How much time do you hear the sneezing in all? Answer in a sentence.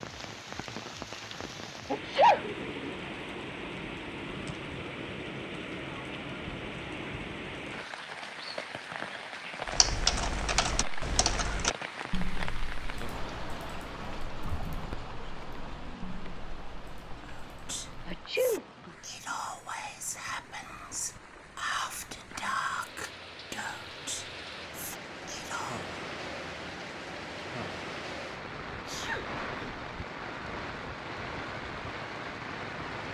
The sneezing can be heard for 2 seconds in total.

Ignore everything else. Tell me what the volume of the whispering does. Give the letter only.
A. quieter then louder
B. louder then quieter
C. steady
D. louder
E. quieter
B.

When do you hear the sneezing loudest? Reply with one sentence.
The loudest moment of the sneezing is at 2 seconds.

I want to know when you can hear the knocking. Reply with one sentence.
The knocking can't be heard in this clip.